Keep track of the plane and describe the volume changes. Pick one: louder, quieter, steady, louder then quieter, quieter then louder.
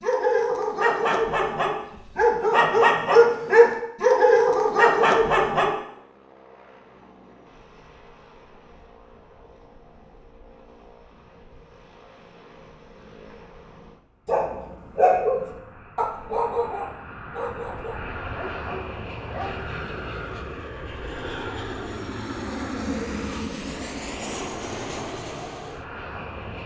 louder.